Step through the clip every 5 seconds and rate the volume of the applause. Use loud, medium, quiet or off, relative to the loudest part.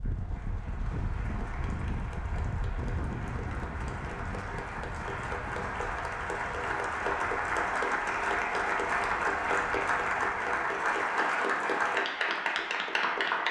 quiet, loud, loud.